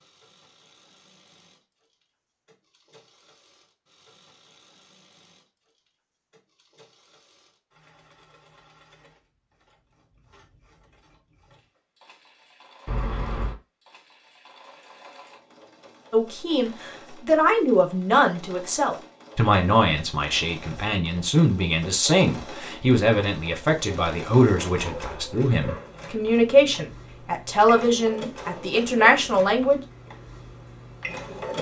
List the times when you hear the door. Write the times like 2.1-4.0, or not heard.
12.8-13.6.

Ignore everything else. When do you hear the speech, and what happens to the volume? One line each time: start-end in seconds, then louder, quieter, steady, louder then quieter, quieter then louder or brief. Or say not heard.
16.1-29.8 steady.